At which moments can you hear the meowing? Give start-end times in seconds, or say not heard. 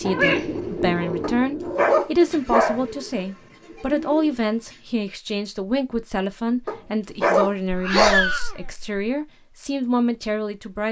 0.0-1.4, 7.7-8.8.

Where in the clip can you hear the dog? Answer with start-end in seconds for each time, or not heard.
1.2-2.8, 6.7-8.2.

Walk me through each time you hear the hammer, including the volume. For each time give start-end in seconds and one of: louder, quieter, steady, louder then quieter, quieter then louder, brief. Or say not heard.
not heard.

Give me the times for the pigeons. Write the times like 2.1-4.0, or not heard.
0.0-4.8.